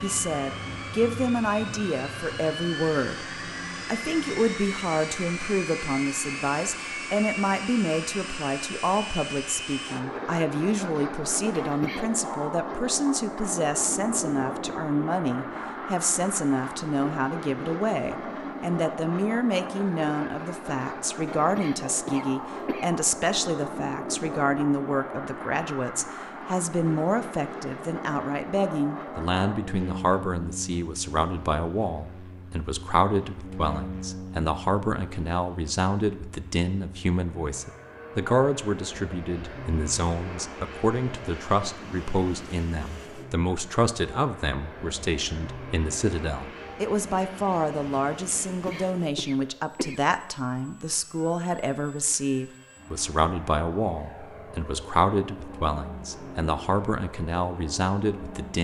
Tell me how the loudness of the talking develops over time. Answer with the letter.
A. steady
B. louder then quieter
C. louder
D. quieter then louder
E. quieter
A.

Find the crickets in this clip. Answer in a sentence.
You can't hear the crickets here.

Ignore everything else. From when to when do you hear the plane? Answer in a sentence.
The plane can be heard from 0.0 to 58.5 s.